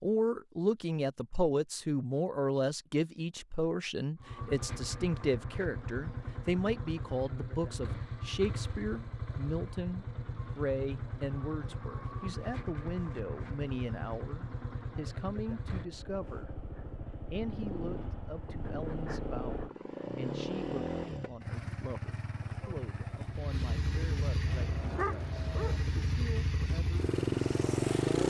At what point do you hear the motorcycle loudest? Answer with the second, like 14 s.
28 s.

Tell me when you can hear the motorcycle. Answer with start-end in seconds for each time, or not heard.
4.2-28.2.